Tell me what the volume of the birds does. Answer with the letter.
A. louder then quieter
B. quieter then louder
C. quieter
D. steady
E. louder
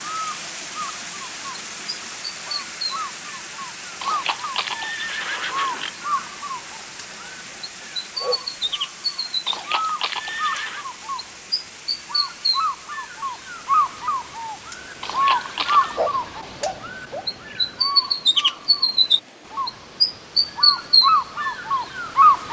E.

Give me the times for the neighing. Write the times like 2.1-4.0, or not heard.
4.0-6.0, 9.4-10.8, 15.0-16.0.